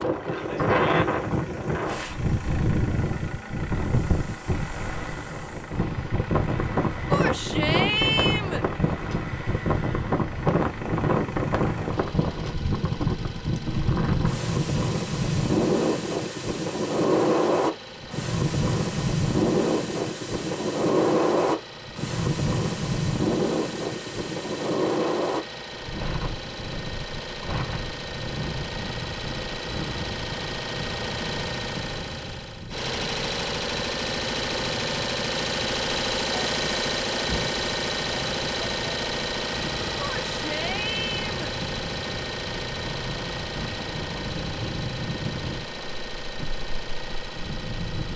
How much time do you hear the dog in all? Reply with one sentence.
The dog can't be heard in this clip.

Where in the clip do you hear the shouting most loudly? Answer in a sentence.
The volume of the shouting peaks at 8 seconds.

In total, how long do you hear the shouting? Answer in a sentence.
You can hear the shouting for 3 seconds altogether.